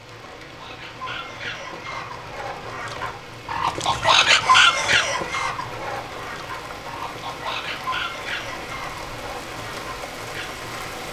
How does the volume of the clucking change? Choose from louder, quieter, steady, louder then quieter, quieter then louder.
louder then quieter.